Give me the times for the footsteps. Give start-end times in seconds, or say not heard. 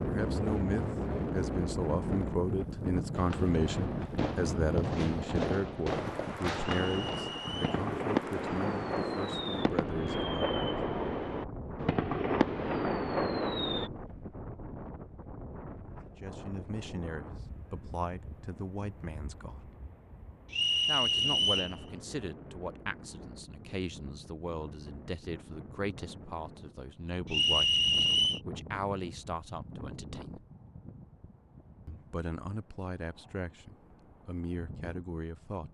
not heard.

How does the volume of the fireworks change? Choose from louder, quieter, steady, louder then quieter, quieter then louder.
louder.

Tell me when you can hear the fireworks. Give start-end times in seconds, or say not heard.
3.1-13.9.